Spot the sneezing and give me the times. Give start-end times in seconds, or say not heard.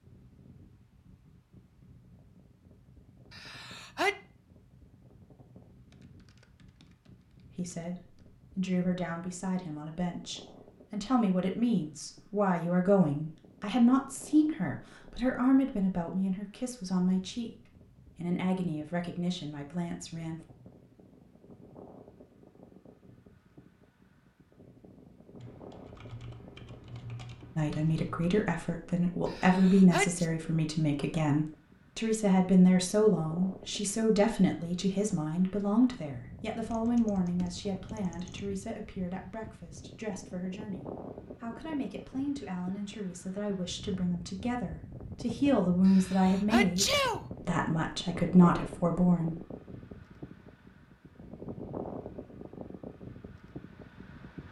3.3-4.2, 29.2-30.2, 45.9-47.2.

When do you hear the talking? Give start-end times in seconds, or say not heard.
7.5-17.5, 18.1-20.4, 27.6-49.4.